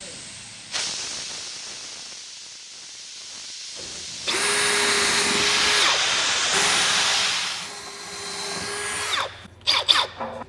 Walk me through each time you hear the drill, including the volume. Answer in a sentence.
You can hear the drill from 3.8 to 10.4 s, getting quieter then louder.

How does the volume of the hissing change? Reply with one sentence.
The volume of the hissing goes down, then up.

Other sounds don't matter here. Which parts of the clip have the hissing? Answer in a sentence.
The hissing can be heard from 0.0 to 7.7 s.